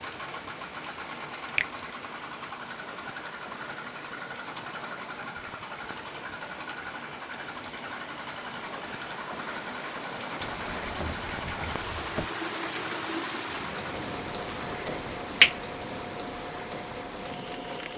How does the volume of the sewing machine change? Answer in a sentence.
The volume of the sewing machine stays about the same.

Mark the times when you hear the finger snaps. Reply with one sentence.
You can hear the finger snaps from 14.5 to 15.6 s.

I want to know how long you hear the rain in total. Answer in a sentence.
The rain can be heard for 18 seconds in total.